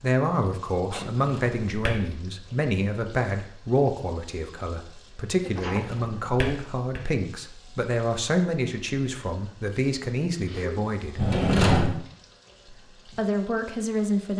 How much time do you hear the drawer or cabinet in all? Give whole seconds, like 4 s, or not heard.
3 s.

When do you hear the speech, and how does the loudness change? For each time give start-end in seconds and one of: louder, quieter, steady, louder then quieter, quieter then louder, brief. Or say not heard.
0.0-11.2 steady
12.7-14.3 brief.